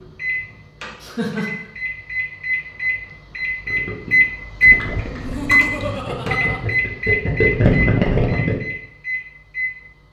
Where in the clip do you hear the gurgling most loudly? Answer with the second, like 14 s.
8 s.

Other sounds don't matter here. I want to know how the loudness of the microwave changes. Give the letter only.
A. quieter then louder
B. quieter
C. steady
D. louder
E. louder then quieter
E.